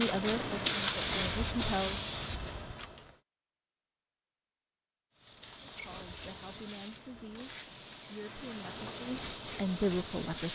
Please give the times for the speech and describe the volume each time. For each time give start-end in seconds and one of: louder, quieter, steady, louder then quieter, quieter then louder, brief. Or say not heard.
0.0-2.0 brief
5.6-10.5 louder.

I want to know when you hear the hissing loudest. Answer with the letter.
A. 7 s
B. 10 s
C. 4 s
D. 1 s
D.